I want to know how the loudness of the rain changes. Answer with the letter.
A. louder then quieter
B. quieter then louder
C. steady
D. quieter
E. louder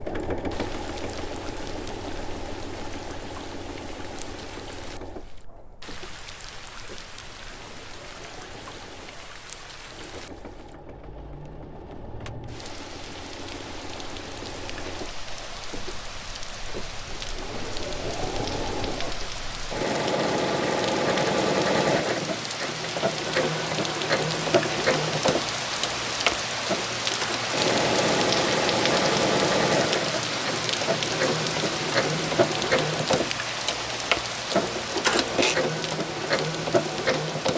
E.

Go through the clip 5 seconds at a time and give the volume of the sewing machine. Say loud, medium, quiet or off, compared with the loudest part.
medium, quiet, quiet, medium, loud, loud, loud, loud.